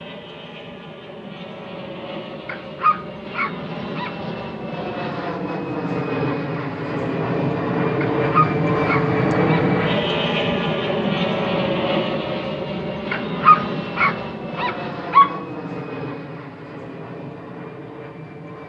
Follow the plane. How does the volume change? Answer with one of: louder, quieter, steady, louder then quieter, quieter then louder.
louder then quieter.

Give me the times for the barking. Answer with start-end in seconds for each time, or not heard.
2.5-4.1, 8.0-9.7, 13.1-15.4.